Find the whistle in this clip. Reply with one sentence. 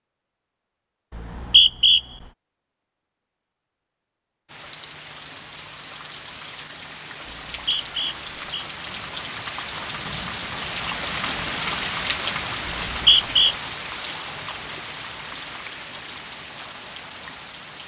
The whistle can be heard from 1.1 to 2.0 s, from 7.2 to 8.7 s and from 12.7 to 13.6 s.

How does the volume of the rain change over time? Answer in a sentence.
The loudness of the rain goes up, then down.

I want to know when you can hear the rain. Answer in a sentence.
You can hear the rain from 4.5 to 17.8 s.